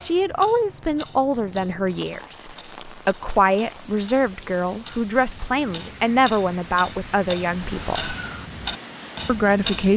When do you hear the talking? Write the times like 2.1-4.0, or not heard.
0.0-8.2, 9.2-9.9.